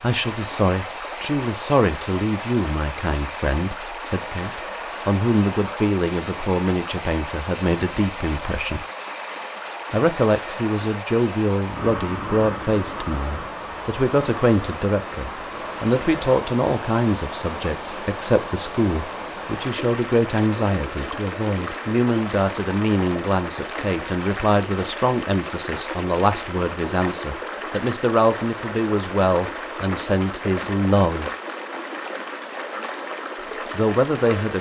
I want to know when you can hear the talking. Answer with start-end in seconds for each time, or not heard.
0.0-8.8, 9.9-31.3, 33.7-34.5.